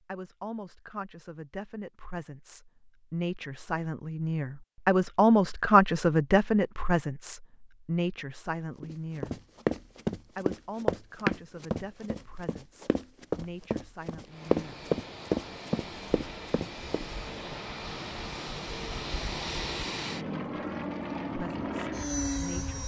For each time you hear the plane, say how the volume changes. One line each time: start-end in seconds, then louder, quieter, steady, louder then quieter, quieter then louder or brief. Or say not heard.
14.2-22.8 louder.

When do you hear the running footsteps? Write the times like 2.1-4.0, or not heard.
8.8-17.1.